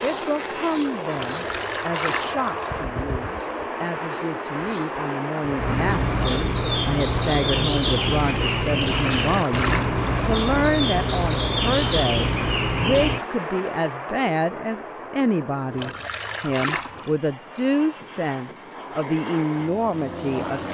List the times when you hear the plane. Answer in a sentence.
You can hear the plane from 0.0 to 20.6 s.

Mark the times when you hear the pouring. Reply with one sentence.
The pouring can be heard from 1.1 to 2.7 s, from 8.8 to 10.2 s and from 15.8 to 17.1 s.